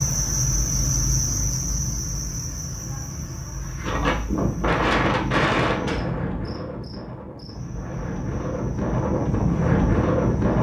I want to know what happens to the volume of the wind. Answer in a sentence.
The volume of the wind goes down, then up.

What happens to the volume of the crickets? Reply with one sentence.
The volume of the crickets goes down.